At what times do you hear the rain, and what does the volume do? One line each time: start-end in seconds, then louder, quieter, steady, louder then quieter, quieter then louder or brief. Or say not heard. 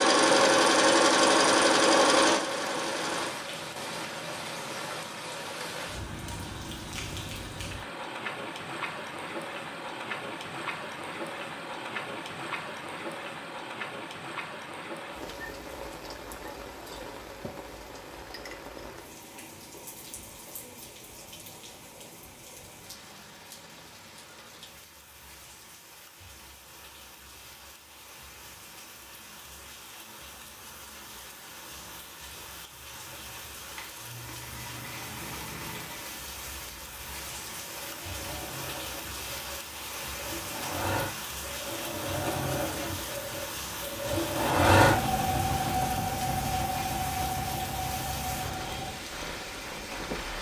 0.2-50.3 quieter then louder.